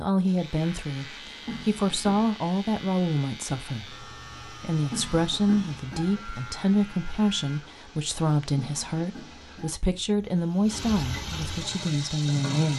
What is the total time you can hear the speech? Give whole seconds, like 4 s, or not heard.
13 s.